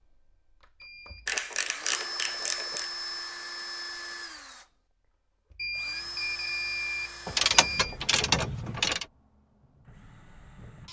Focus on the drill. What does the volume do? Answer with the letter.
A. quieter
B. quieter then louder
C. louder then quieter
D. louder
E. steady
A.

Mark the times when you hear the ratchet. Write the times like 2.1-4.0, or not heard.
1.2-2.9, 7.2-9.1.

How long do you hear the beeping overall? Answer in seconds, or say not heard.
3 s.